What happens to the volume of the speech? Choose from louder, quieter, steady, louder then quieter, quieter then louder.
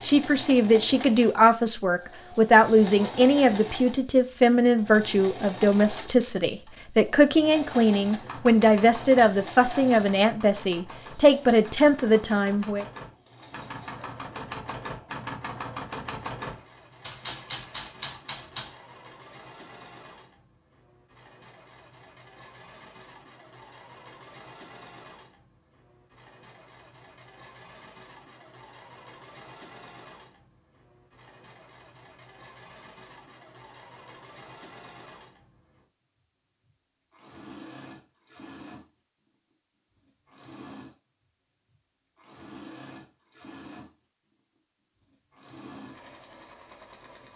steady.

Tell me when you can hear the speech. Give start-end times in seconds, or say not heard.
0.0-12.8.